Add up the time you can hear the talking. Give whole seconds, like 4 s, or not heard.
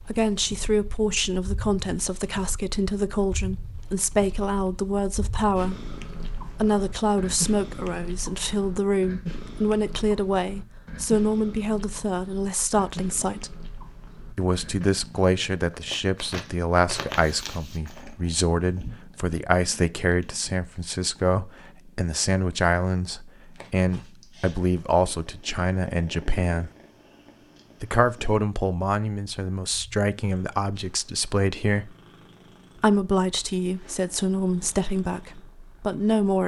34 s.